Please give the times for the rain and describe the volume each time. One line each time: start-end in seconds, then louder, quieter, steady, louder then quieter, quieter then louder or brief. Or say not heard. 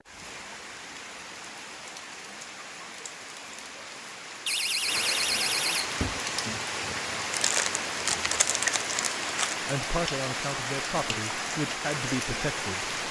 0.0-13.0 louder.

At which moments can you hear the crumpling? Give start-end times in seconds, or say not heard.
7.3-9.6.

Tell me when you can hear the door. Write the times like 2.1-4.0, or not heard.
4.5-6.2.